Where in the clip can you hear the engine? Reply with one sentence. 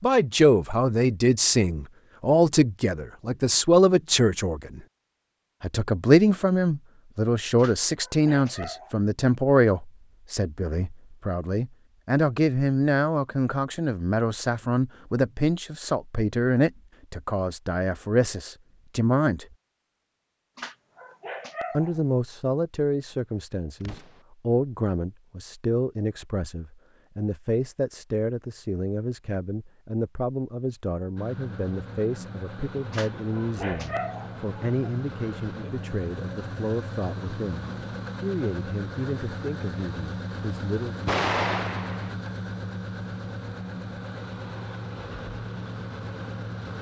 You can hear the engine from 31.1 to 46.7 s.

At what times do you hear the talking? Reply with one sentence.
The talking can be heard from 0.0 to 4.8 s, from 5.6 to 19.4 s and from 21.7 to 41.0 s.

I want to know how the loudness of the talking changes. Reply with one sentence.
The volume of the talking goes down.